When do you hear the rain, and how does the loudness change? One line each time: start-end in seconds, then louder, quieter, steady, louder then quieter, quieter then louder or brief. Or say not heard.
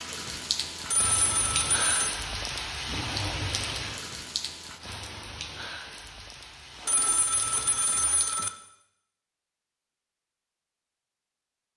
0.0-8.4 quieter.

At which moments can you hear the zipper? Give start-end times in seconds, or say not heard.
2.8-3.5, 6.5-8.2.